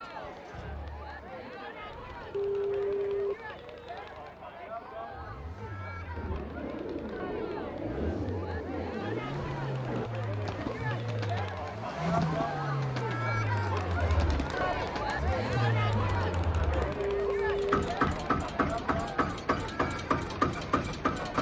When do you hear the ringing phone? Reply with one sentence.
The ringing phone can be heard from 2.3 to 3.4 s and from 16.9 to 17.9 s.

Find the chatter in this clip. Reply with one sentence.
The chatter can be heard from 0.0 to 21.3 s.